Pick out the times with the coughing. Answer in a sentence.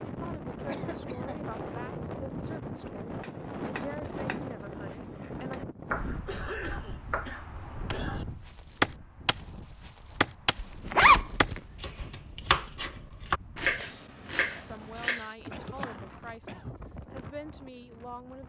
You can hear the coughing from 0.7 to 1.4 s, from 6.2 to 8.2 s and from 15.5 to 16.8 s.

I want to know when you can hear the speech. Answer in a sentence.
You can hear the speech from 0.0 to 5.6 s and from 14.4 to 18.4 s.